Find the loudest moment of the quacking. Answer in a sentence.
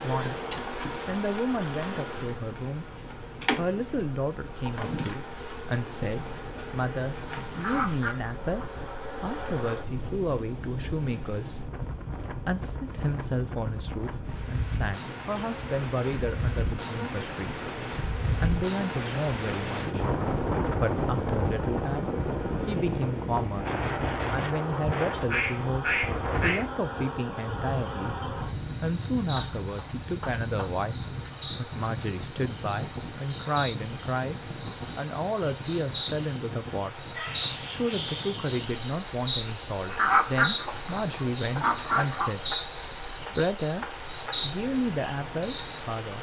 The volume of the quacking peaks at 40 seconds.